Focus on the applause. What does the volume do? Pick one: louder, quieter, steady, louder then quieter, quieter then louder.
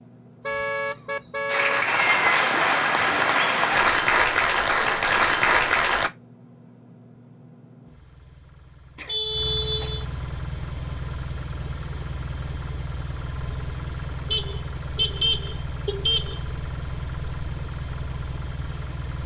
steady.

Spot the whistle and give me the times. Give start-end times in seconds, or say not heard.
not heard.